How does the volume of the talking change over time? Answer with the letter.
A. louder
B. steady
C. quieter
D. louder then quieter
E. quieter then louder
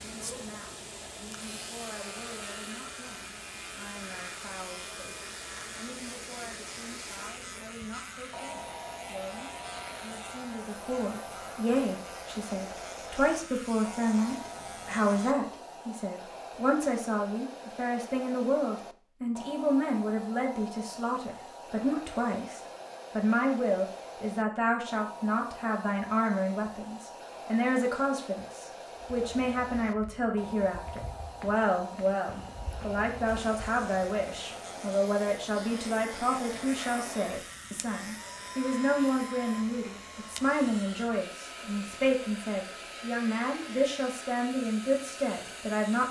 A.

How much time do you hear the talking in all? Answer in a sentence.
The talking can be heard for 46 seconds in total.